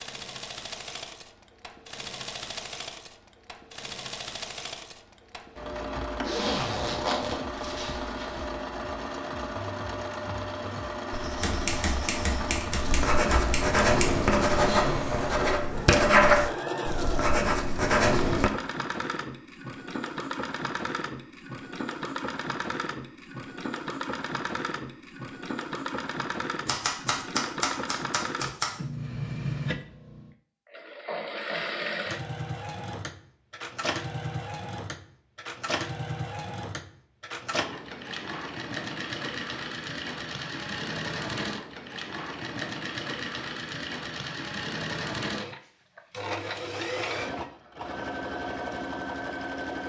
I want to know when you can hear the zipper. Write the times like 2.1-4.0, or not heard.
6.2-8.5.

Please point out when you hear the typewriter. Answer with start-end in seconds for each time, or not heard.
11.4-14.2, 26.6-28.8.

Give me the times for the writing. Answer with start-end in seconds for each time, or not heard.
11.1-18.5.